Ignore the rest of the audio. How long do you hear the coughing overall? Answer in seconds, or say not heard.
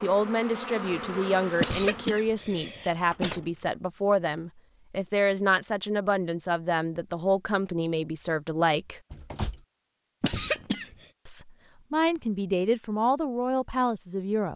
3 s.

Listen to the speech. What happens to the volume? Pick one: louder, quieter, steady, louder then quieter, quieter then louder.
steady.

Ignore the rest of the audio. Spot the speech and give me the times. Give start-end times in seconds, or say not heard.
0.0-9.0, 11.2-14.5.